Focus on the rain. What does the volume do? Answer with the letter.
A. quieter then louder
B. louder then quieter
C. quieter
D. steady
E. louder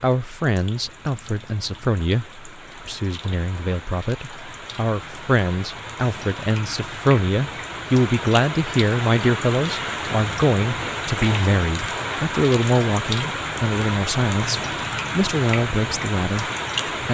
E.